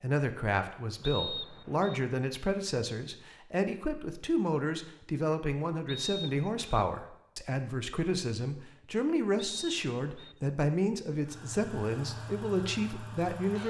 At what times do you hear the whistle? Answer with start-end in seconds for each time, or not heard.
1.0-2.0, 5.8-6.6, 9.3-10.3.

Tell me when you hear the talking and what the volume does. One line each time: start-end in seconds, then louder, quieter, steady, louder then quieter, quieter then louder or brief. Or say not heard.
0.0-13.6 steady.